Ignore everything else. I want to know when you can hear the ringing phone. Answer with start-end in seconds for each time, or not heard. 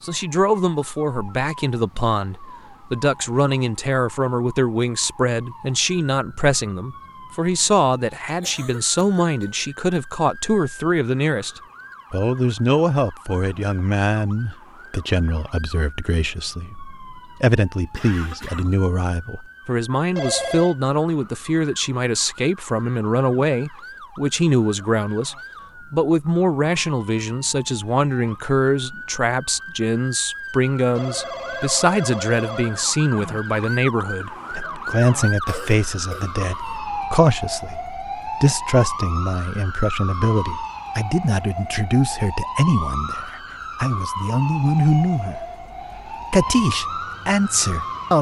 20.1-20.8, 30.9-33.0.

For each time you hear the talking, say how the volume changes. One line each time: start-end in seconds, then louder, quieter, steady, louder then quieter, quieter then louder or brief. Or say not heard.
0.0-45.5 steady
46.3-48.1 brief.